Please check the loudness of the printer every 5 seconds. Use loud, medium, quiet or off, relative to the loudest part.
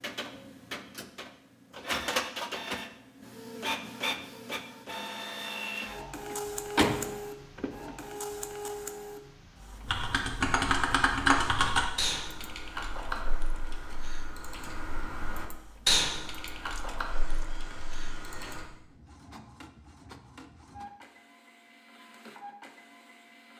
loud, loud, quiet, quiet, quiet.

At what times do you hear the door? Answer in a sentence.
You can hear the door from 6.3 to 8.0 s.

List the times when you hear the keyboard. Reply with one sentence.
You can hear the keyboard from 9.8 to 18.7 s.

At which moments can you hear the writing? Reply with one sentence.
The writing can't be heard in this clip.